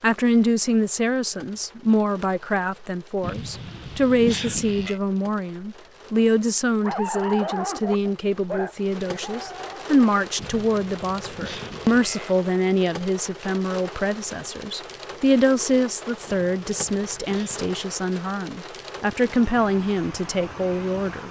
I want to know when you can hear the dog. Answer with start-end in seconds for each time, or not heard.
6.8-9.9.